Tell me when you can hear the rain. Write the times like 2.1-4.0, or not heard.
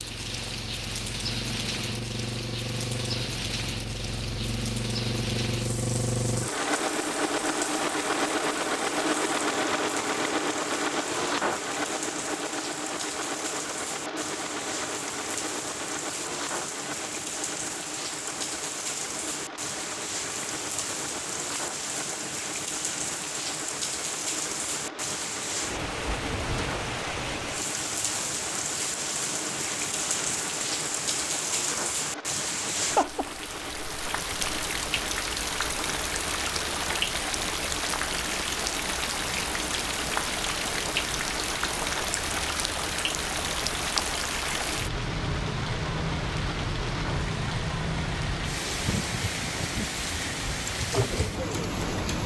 0.0-52.2.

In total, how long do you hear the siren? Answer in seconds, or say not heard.
not heard.